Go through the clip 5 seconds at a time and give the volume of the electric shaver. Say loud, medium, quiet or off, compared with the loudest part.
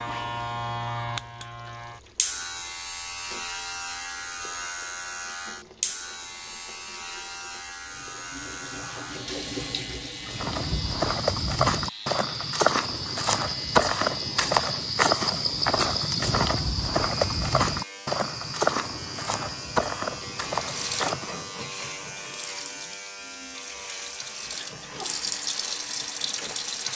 loud, loud, medium, medium, medium, medium.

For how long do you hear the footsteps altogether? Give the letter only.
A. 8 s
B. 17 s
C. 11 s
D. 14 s
C.